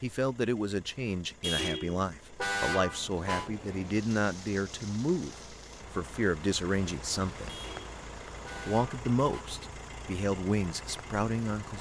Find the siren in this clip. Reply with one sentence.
You can't hear the siren here.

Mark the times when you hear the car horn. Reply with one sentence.
You can hear the car horn from 1.4 to 3.5 s and from 7.5 to 9.4 s.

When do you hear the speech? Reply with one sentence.
The speech can be heard from 0.0 to 7.5 s and from 8.7 to 11.7 s.